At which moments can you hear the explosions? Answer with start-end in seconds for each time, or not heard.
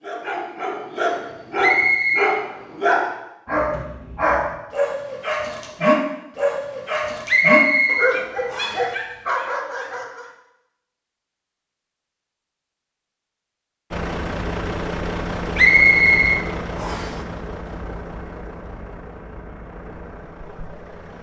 not heard.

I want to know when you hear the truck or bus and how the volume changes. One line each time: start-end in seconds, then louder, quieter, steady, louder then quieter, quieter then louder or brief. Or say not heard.
13.9-21.1 quieter.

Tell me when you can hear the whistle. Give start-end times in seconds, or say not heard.
1.6-2.4, 7.2-8.8, 15.6-17.1.